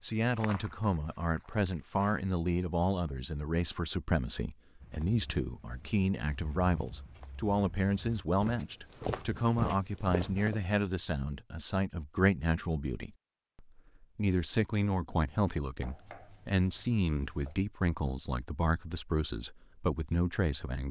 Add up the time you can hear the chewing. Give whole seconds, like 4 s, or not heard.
not heard.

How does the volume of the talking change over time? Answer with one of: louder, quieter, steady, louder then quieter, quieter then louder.
steady.